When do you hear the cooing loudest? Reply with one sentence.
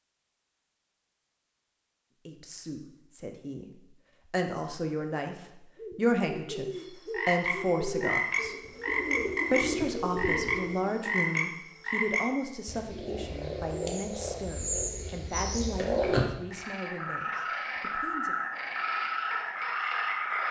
The loudest moment of the cooing is at 10 seconds.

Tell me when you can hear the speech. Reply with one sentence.
You can hear the speech from 2.2 to 3.7 s, from 4.3 to 8.6 s and from 9.5 to 18.4 s.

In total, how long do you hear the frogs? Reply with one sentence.
The frogs can be heard for 14 seconds in total.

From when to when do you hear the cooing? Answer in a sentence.
The cooing can be heard from 5.8 to 11.3 s.